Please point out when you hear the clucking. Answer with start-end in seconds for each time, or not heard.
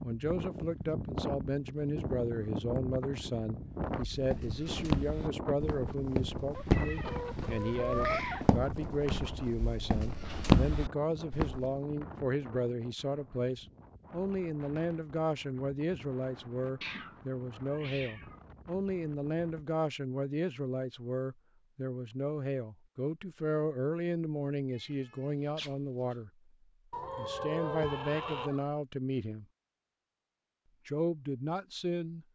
6.5-8.5, 26.9-28.6.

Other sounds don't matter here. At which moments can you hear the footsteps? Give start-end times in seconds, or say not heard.
4.0-11.7.